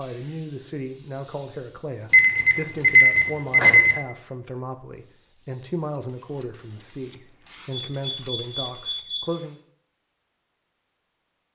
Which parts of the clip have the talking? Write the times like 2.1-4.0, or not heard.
0.0-9.6.